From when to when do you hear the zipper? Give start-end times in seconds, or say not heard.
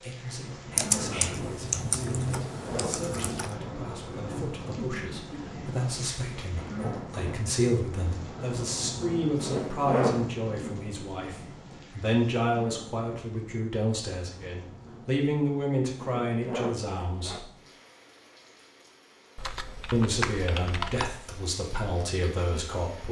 2.1-3.0, 9.3-10.2, 15.9-17.4.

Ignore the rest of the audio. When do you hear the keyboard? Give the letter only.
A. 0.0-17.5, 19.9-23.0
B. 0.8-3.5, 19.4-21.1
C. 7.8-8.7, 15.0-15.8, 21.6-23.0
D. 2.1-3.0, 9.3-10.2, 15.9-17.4
B.